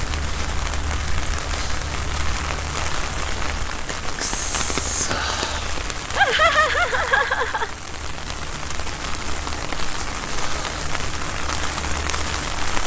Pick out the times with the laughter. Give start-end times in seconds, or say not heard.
6.2-7.7.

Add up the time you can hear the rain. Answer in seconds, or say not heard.
13 s.